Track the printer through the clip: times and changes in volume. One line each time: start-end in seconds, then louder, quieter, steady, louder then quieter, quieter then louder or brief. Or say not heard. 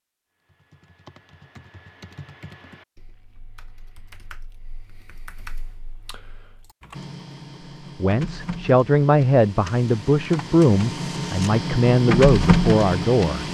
6.9-13.4 louder.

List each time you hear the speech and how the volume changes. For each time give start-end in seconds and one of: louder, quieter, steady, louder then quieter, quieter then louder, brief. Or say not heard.
8.0-13.4 steady.